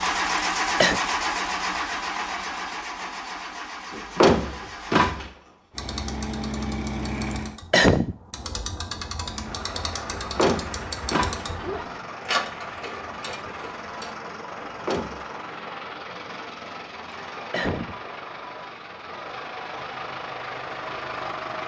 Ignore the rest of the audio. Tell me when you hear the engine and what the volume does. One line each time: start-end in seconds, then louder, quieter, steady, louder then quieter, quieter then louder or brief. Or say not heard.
0.0-7.6 quieter then louder
9.2-21.6 steady.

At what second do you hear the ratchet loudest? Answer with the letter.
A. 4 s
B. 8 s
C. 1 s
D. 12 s
D.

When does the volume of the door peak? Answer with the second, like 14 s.
4 s.